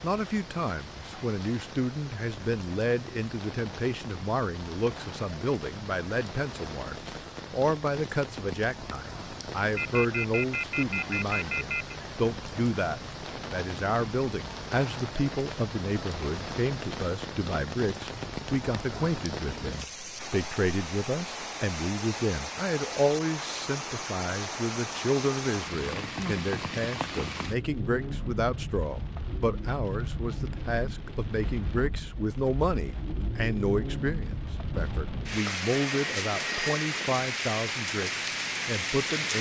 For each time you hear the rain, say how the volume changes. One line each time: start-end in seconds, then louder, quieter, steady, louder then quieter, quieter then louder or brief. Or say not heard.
0.0-39.3 louder.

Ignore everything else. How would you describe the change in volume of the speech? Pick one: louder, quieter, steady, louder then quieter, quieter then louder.
steady.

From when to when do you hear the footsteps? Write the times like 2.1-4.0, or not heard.
not heard.